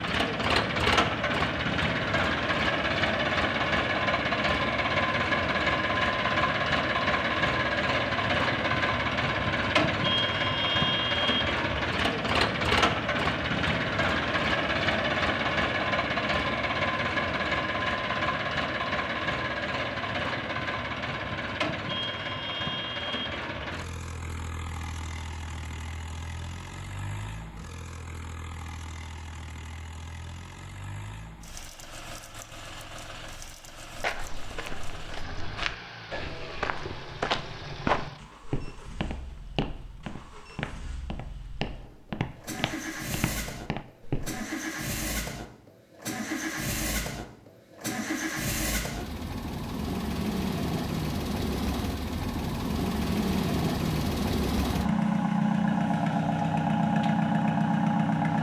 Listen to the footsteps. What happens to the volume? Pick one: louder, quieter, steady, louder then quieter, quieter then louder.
louder then quieter.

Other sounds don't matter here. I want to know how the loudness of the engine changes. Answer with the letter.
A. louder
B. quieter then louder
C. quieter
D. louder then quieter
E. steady
B.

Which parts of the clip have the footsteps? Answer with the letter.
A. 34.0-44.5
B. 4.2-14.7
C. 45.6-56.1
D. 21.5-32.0
A.